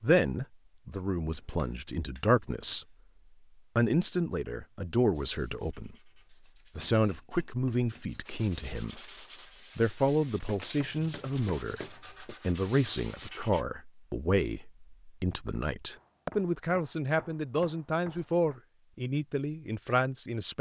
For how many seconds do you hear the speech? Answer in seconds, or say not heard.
18 s.